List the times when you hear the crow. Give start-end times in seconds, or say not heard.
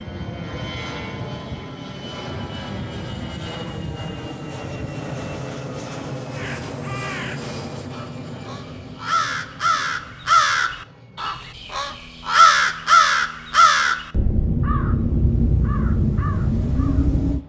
6.3-17.4.